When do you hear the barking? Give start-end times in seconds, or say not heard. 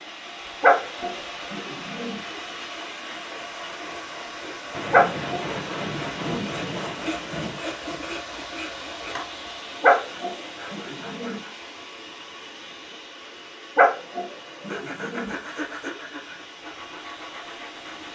0.6-2.2, 4.9-6.5, 9.8-11.4, 13.8-15.3.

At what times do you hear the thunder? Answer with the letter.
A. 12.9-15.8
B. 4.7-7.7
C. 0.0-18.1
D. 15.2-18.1
B.